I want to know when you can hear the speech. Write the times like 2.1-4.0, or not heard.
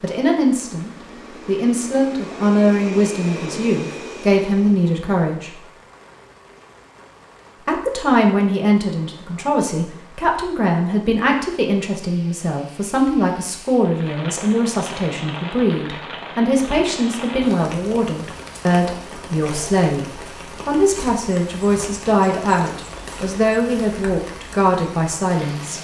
0.0-5.6, 7.7-25.8.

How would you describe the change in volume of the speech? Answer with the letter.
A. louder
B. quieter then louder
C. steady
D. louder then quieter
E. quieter
C.